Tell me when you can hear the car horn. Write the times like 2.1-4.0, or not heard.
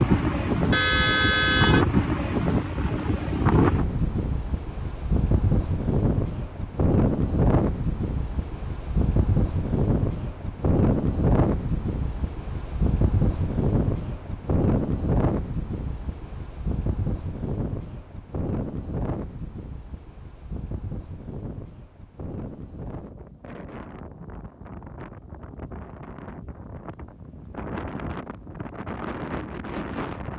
0.7-1.9.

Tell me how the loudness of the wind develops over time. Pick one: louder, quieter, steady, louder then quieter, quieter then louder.
quieter.